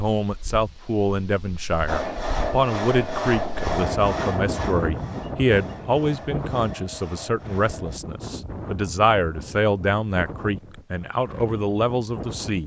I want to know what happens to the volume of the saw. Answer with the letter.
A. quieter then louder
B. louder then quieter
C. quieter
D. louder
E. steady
C.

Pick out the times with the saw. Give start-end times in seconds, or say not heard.
1.9-8.0.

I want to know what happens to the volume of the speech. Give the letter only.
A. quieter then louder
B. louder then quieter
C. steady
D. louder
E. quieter
C.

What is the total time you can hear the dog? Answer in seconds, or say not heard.
not heard.